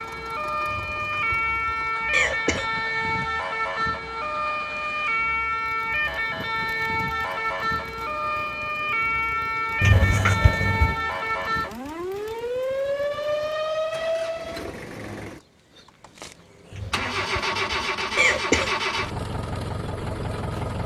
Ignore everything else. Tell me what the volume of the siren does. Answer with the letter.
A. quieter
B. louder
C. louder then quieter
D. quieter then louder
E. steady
E.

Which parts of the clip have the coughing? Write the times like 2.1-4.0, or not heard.
0.7-2.7, 9.8-11.0, 16.7-18.7.